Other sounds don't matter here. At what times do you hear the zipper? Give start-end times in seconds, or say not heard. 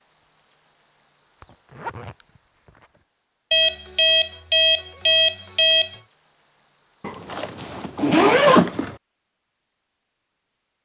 1.4-2.9, 7.0-8.9.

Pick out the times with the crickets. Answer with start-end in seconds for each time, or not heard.
0.0-7.4.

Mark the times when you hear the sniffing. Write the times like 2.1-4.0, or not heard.
not heard.